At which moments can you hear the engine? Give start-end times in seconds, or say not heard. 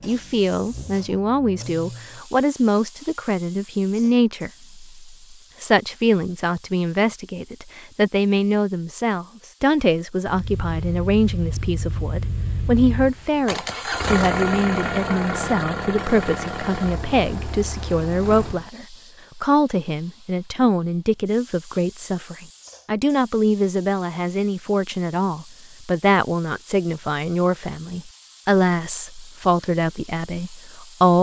0.0-2.2, 10.2-18.7.